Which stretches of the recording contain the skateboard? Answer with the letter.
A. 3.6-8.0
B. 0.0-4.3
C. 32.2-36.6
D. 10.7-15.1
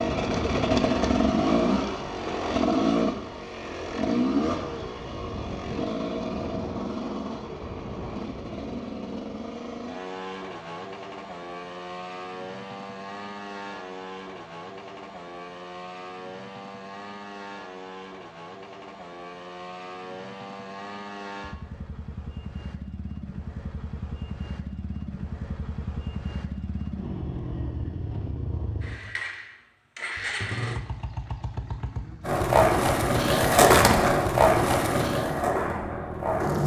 C.